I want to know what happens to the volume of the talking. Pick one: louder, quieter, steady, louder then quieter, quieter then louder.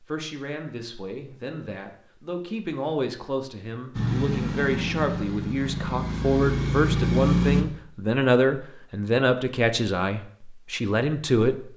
louder.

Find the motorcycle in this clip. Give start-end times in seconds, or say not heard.
4.0-7.7.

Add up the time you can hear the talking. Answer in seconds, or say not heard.
12 s.